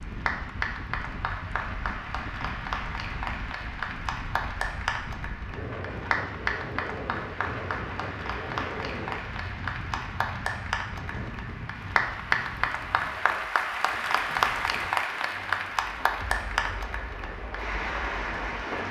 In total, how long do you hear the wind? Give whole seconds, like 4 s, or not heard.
19 s.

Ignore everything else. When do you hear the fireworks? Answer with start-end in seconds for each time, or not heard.
not heard.